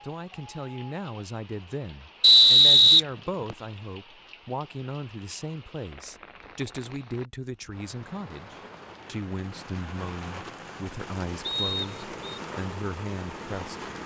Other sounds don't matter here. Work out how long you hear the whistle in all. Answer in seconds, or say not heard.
2 s.